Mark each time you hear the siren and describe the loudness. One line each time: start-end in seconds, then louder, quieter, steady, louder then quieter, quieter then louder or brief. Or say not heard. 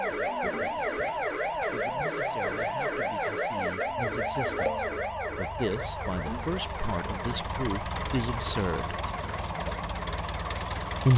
0.0-11.1 quieter.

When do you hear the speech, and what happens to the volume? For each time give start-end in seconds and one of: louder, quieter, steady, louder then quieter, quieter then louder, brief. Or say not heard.
0.1-9.0 louder.